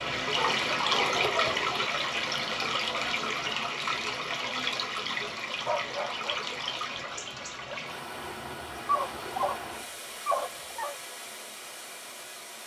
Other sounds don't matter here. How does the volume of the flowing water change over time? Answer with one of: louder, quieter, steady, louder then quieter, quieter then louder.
quieter.